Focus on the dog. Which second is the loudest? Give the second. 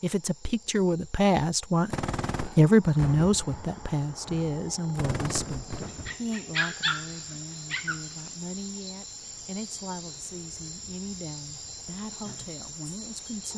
7 s.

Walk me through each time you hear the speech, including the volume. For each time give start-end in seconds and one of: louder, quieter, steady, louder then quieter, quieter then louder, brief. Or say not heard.
0.0-13.5 quieter.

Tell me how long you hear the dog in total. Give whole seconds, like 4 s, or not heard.
2 s.